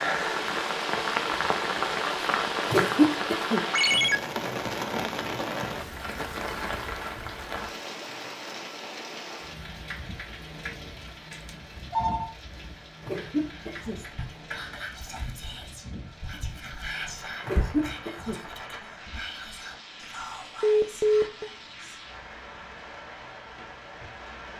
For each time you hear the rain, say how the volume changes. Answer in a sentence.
The rain can be heard from 0.0 to 24.5 s, getting quieter.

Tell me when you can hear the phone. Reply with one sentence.
You can hear the phone from 3.7 to 4.2 s, from 11.3 to 12.3 s and from 20.6 to 21.5 s.